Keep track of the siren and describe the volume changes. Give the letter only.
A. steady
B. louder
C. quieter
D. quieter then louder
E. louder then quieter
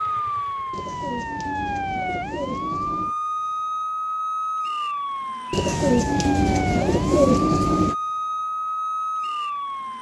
A.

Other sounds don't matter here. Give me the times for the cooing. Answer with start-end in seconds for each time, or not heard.
0.7-3.1, 5.5-8.0.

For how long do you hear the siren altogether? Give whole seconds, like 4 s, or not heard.
10 s.